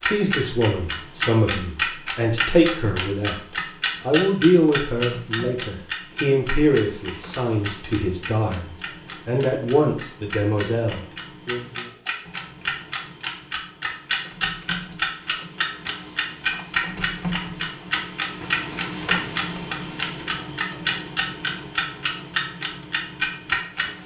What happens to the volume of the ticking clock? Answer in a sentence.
The volume of the ticking clock goes down, then up.